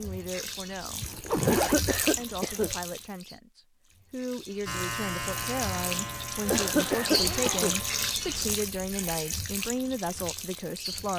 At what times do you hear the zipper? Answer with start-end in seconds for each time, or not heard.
1.0-2.2, 6.8-8.6.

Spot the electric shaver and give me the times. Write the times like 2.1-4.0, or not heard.
4.7-8.2.